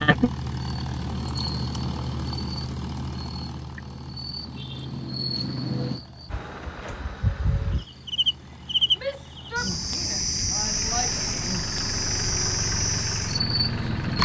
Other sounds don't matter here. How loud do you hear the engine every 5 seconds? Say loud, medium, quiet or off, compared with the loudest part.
loud, quiet, loud.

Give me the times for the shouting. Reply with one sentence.
You can hear the shouting from 8.9 to 11.2 s.